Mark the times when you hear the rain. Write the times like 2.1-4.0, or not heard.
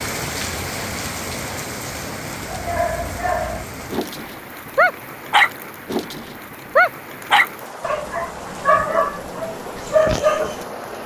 0.0-11.0.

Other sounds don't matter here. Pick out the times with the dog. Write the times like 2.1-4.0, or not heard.
2.5-11.0.